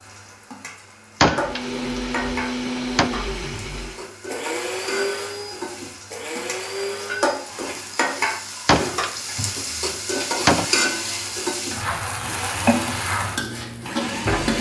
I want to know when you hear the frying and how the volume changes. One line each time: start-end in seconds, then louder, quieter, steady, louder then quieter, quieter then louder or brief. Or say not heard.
0.0-14.5 louder.